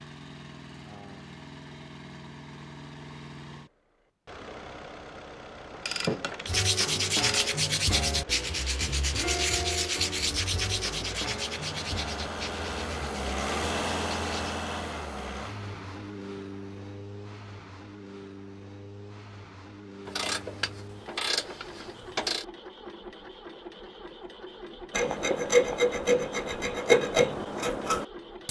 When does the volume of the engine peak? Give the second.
14 s.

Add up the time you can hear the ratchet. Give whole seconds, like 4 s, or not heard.
4 s.